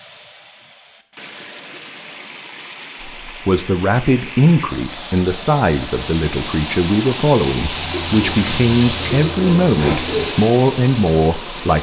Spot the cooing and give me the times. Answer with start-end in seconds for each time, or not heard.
7.7-10.3.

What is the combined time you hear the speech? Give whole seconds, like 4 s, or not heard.
9 s.